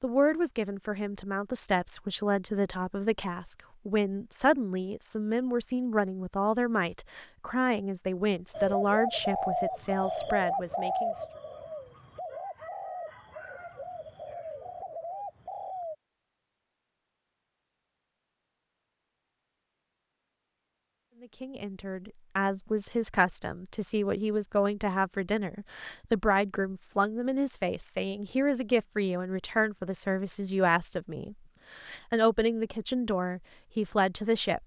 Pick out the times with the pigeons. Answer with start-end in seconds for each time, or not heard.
8.5-15.9.